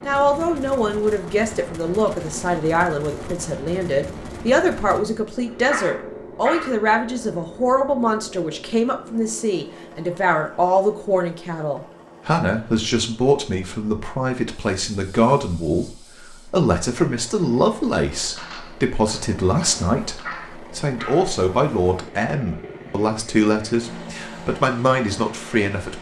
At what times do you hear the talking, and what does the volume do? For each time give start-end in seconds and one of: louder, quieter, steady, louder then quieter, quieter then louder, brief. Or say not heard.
0.1-25.9 steady.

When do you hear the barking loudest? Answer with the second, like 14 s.
6 s.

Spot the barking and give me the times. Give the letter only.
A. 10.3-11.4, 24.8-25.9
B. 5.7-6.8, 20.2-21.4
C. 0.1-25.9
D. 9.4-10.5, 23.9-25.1
B.